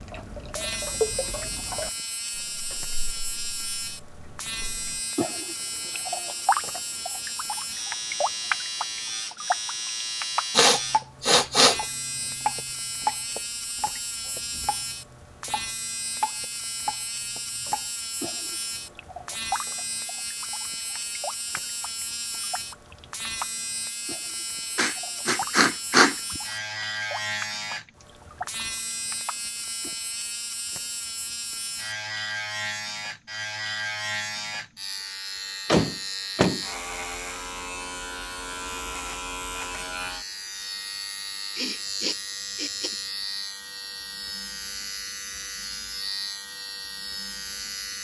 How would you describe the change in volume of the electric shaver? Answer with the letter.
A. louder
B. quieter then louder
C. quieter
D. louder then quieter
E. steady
E.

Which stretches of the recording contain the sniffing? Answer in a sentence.
The sniffing can be heard from 10.6 to 11.8 s, from 24.8 to 26.4 s and from 41.5 to 43.0 s.